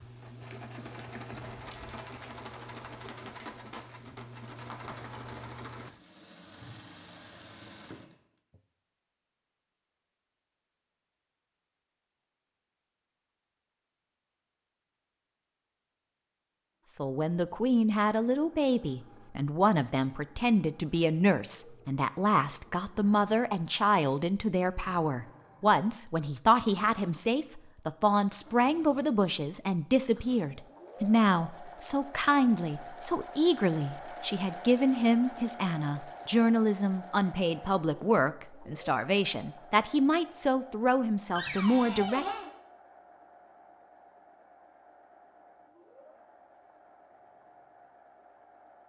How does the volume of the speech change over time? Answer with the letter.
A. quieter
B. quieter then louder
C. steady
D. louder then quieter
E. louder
C.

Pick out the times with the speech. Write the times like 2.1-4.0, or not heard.
16.9-42.2.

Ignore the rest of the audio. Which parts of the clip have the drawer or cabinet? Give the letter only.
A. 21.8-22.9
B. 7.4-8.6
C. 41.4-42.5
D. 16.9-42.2
C.